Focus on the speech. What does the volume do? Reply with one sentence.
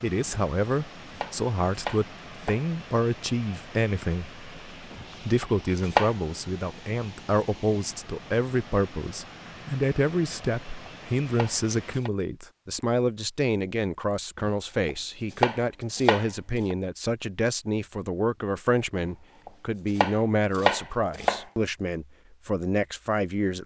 The loudness of the speech stays about the same.